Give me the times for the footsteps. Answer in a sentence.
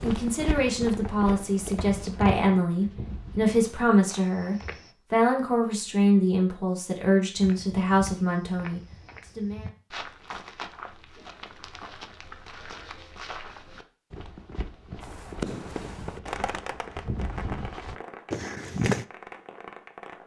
The footsteps can be heard from 0.0 to 5.0 s and from 7.3 to 19.1 s.